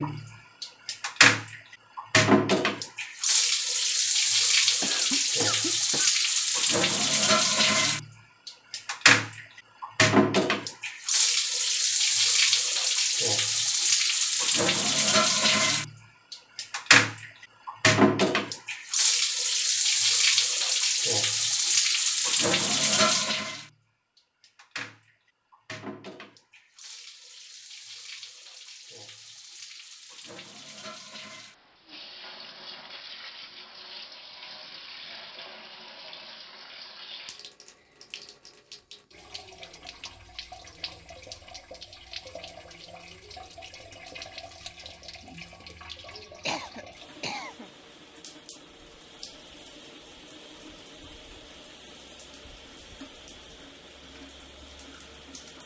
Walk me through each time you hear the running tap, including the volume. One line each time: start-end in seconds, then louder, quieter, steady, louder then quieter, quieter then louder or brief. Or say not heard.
0.0-55.6 quieter.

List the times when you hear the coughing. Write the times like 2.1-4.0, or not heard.
4.8-6.2, 46.5-47.6.